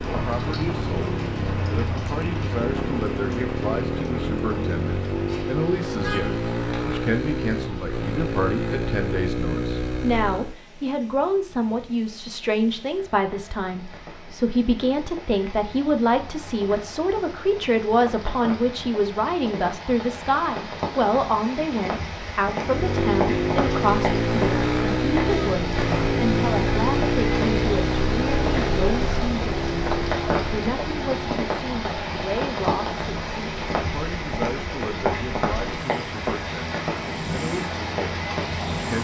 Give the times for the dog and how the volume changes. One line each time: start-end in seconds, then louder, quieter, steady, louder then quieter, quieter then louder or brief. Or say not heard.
not heard.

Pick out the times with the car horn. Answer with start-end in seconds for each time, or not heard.
5.1-6.5.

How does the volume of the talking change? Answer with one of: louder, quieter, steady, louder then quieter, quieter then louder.
louder then quieter.